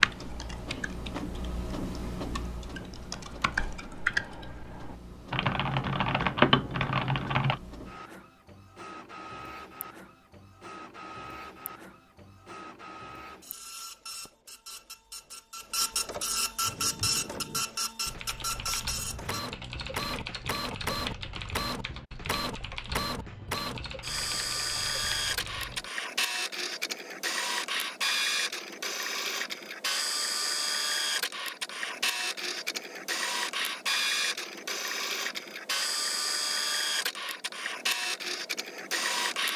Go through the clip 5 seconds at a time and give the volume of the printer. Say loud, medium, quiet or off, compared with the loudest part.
medium, quiet, quiet, loud, loud, loud, loud, loud.